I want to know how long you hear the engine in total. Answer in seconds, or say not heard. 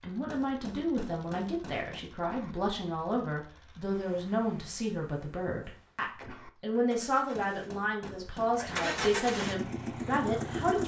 11 s.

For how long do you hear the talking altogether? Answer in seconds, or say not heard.
11 s.